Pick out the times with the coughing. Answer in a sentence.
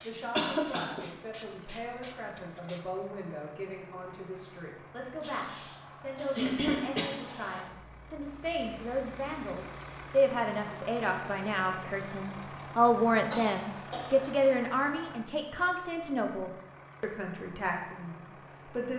The coughing can be heard from 0.3 to 1.1 s, from 6.3 to 7.1 s and from 13.3 to 14.3 s.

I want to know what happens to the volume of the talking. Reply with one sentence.
The loudness of the talking goes up, then down.